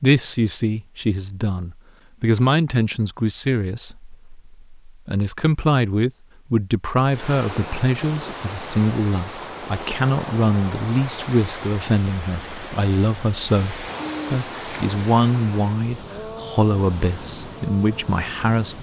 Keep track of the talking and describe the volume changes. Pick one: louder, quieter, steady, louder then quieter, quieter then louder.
steady.